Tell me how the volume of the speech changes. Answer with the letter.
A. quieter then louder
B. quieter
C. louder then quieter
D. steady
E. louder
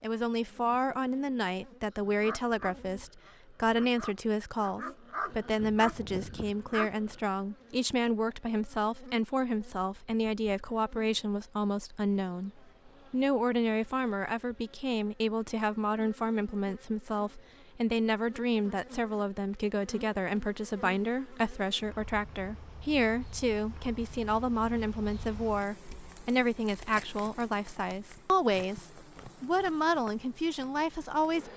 D.